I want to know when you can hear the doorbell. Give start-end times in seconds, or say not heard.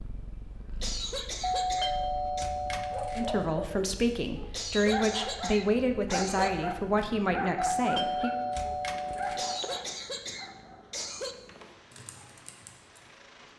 1.4-3.5, 7.5-9.6.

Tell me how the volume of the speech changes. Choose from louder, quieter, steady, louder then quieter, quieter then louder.
steady.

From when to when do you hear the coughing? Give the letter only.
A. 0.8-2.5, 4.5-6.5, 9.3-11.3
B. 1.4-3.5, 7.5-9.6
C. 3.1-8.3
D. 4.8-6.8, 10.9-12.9
A.